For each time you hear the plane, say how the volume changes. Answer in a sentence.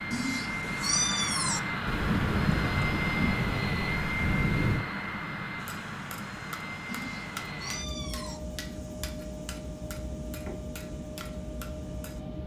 You can hear the plane from 0.0 to 12.4 s, getting quieter.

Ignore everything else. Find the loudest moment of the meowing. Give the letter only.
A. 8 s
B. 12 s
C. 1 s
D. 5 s
C.